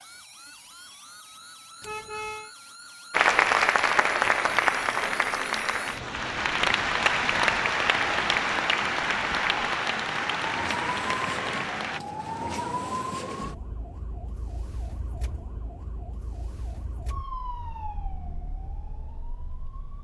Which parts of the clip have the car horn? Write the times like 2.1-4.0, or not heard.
1.8-2.5.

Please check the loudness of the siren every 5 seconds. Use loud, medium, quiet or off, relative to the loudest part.
quiet, loud, loud, medium.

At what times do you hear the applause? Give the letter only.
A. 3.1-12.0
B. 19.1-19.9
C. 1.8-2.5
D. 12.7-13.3
A.